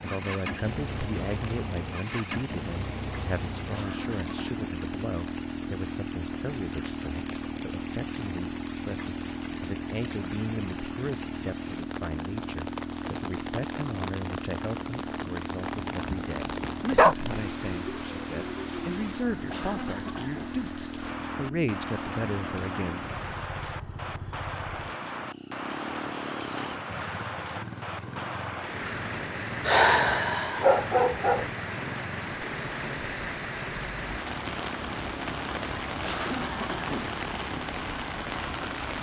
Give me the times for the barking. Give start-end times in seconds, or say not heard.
15.8-17.1, 29.6-31.4.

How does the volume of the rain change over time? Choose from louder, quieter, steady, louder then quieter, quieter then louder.
louder.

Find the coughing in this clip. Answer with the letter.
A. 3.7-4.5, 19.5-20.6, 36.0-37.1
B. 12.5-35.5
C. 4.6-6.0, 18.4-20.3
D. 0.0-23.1
A.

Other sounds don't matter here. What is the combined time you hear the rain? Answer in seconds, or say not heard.
39 s.